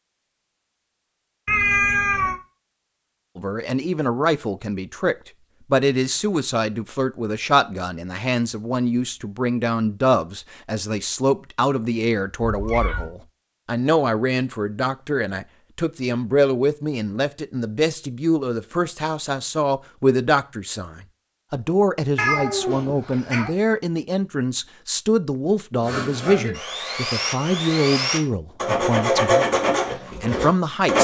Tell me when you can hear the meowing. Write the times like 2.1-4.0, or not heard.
1.4-2.4, 12.4-13.1, 22.1-23.5.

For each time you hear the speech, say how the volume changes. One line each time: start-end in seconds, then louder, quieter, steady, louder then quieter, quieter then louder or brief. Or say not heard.
3.4-30.9 steady.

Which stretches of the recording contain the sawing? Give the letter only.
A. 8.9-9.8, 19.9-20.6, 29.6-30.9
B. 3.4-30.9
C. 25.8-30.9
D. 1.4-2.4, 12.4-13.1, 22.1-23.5
C.